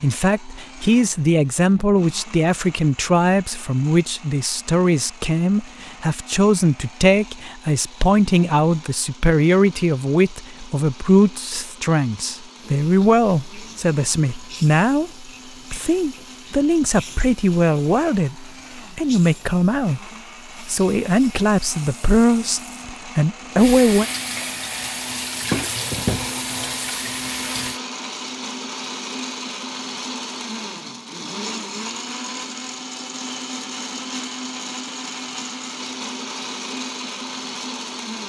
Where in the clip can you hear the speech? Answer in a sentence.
You can hear the speech from 0.0 to 15.1 s, from 15.7 to 18.4 s, from 18.9 to 20.0 s and from 20.6 to 24.1 s.